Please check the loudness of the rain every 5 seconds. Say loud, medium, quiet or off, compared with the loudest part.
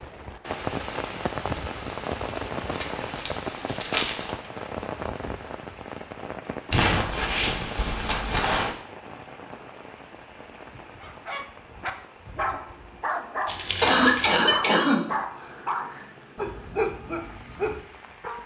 loud, medium, quiet, quiet.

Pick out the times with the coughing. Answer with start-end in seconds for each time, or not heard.
13.8-15.1.